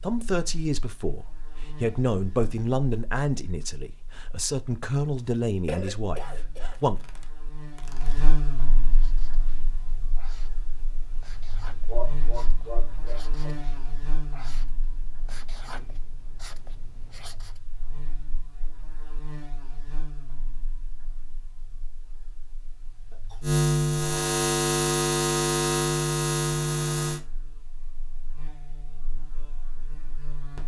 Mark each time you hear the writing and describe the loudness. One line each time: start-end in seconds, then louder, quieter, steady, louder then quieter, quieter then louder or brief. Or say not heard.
8.8-17.6 louder.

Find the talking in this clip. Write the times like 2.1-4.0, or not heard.
0.0-7.0.